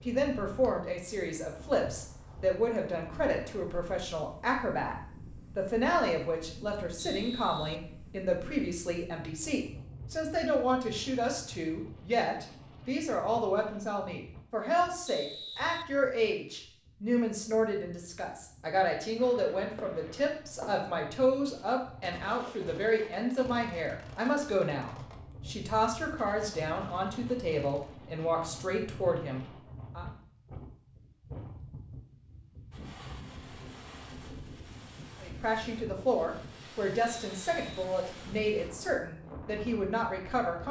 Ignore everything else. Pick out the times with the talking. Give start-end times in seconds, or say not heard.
0.1-5.0, 5.5-30.1, 35.2-40.6.